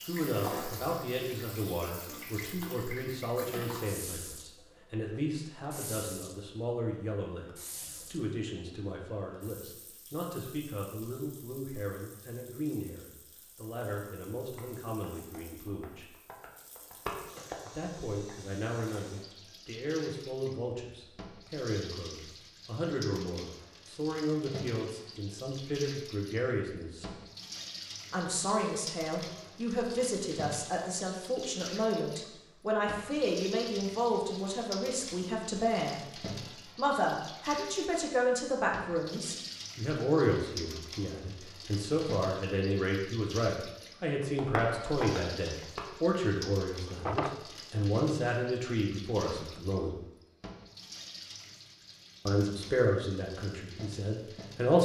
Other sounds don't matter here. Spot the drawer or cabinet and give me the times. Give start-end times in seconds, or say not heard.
46.7-47.9.